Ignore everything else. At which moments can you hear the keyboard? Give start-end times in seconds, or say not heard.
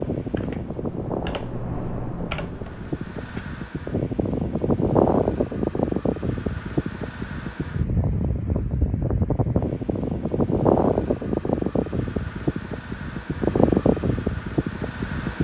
0.1-3.5.